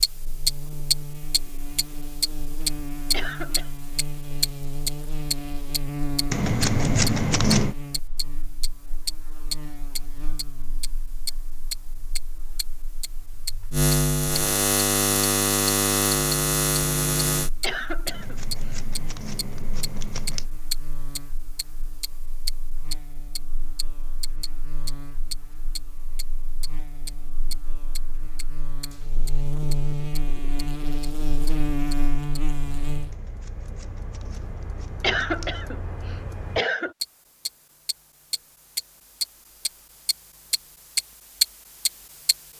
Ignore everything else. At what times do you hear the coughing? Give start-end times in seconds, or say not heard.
3.1-3.7, 17.6-18.8, 35.0-36.9.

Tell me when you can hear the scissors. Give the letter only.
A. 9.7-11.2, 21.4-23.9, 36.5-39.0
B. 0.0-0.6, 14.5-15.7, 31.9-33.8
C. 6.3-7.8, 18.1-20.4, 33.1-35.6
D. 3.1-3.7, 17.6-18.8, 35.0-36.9
C.